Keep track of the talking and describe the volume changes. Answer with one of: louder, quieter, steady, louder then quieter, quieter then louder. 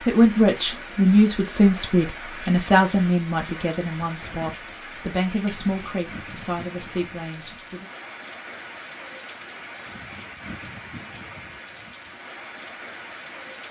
quieter.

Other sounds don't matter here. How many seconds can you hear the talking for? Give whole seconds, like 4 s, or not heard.
8 s.